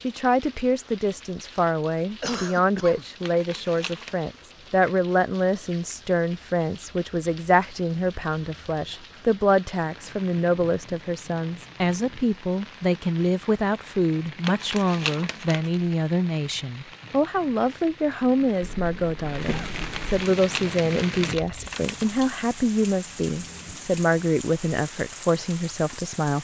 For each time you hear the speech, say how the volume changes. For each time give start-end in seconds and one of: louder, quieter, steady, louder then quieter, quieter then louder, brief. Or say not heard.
0.0-26.3 steady.